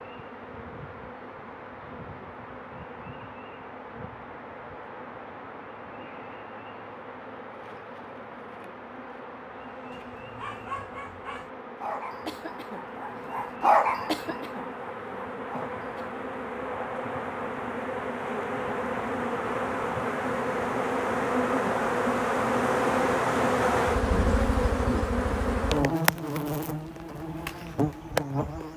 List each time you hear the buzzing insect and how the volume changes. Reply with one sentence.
The buzzing insect can be heard from 0.0 to 28.7 s, getting louder.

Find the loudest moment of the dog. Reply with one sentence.
The loudest moment of the dog is at 14 seconds.